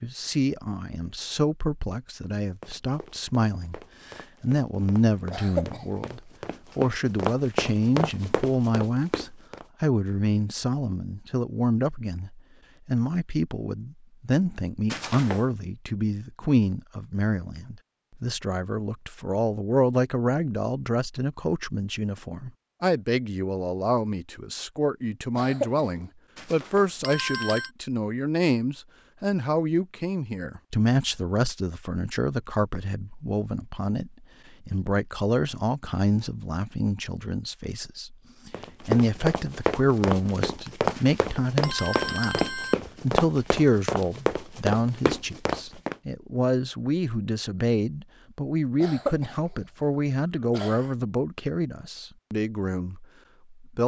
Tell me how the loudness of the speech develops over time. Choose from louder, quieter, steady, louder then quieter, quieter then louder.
steady.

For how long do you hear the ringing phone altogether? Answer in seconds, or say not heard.
4 s.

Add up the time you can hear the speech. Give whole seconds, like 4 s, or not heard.
54 s.